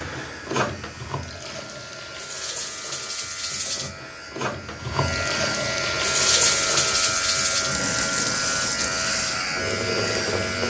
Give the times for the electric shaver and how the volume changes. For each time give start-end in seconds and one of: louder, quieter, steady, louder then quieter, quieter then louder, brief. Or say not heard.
0.0-10.6 louder.